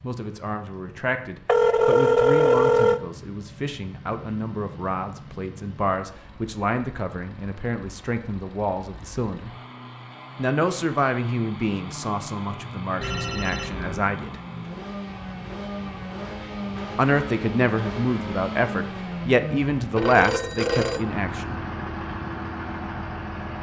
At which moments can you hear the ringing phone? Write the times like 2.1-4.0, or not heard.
1.4-3.0, 13.0-14.0, 19.9-21.1.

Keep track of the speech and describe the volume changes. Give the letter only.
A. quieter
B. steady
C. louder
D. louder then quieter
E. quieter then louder
C.